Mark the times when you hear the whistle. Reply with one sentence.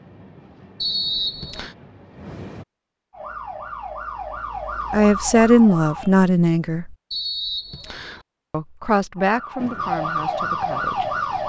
You can hear the whistle from 0.8 to 1.8 s and from 7.1 to 8.2 s.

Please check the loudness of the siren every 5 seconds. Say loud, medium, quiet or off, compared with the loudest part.
medium, medium, loud.